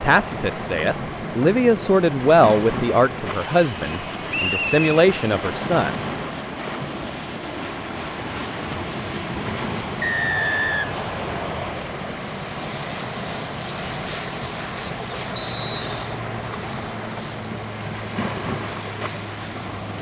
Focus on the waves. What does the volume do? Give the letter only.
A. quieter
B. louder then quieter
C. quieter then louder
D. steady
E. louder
D.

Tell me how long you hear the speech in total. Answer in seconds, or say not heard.
6 s.